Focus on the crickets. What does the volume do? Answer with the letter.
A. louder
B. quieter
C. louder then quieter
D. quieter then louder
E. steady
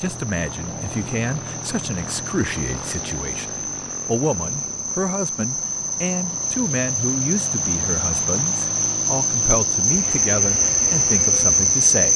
A.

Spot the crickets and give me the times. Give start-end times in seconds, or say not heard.
0.1-12.1.